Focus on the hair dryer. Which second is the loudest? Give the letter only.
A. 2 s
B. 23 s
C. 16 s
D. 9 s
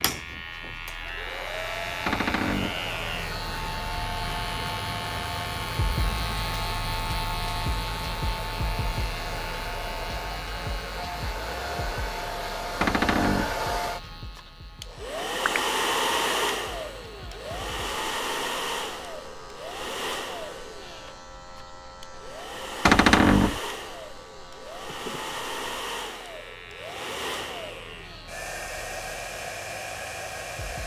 C.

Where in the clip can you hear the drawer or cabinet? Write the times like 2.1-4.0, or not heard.
2.0-2.8, 12.8-13.6, 22.9-23.6.